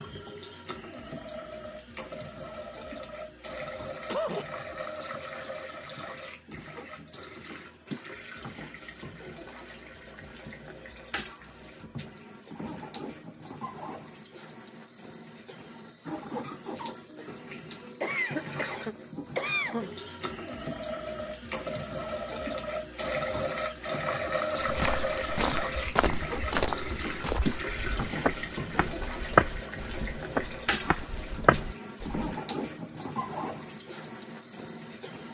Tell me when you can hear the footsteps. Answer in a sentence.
You can hear the footsteps from 24.6 to 32.3 s.